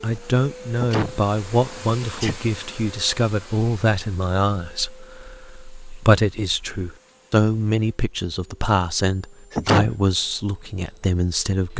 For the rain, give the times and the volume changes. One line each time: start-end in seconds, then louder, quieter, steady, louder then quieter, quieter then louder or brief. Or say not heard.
not heard.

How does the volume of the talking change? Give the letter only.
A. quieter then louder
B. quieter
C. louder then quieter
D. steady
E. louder
D.